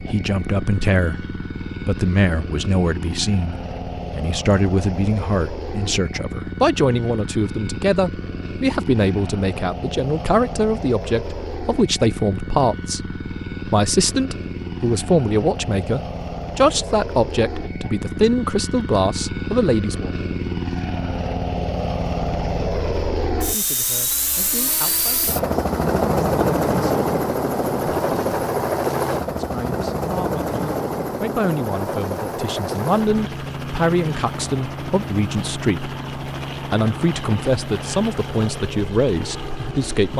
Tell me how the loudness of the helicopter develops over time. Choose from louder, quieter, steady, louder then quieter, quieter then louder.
louder then quieter.